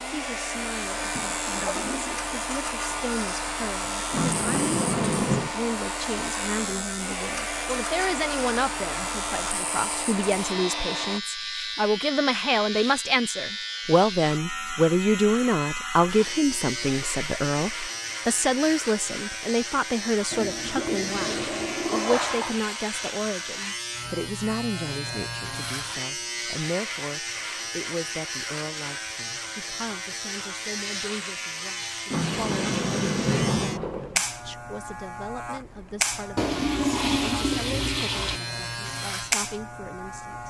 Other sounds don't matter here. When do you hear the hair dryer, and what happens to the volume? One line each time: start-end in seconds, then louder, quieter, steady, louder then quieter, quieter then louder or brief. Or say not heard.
0.0-11.2 steady.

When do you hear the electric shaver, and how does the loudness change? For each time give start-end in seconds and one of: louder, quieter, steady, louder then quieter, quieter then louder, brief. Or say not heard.
0.0-40.4 steady.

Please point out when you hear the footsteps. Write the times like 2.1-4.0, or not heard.
not heard.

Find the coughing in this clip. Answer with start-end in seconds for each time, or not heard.
not heard.